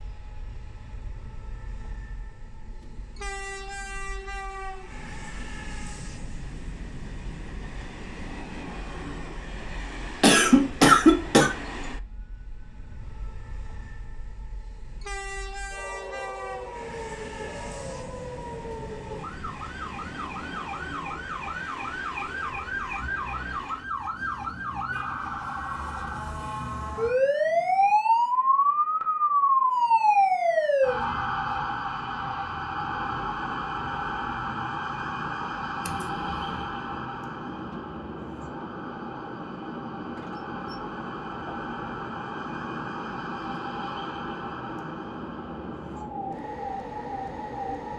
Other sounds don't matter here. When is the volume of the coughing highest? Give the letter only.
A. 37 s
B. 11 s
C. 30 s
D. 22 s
B.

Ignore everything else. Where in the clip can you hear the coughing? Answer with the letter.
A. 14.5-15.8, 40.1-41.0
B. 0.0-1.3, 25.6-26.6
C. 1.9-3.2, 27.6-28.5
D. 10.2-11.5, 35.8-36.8
D.